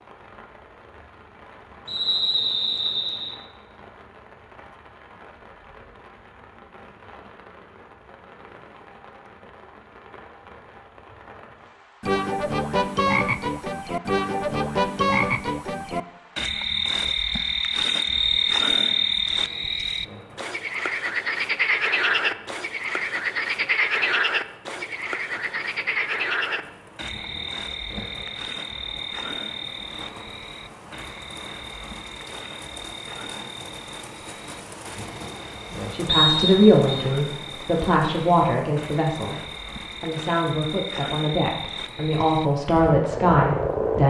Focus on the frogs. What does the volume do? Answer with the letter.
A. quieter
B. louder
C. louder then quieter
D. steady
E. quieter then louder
E.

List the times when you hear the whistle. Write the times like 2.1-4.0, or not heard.
1.9-3.4, 18.1-19.1, 36.0-37.0.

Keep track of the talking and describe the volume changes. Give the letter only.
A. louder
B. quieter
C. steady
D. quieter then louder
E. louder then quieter
D.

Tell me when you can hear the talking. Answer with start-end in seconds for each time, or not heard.
35.9-44.0.